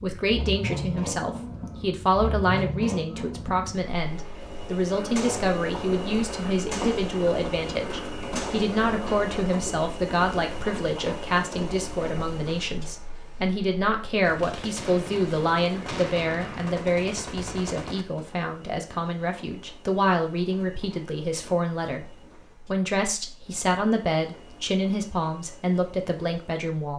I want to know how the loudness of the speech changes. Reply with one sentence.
The volume of the speech stays about the same.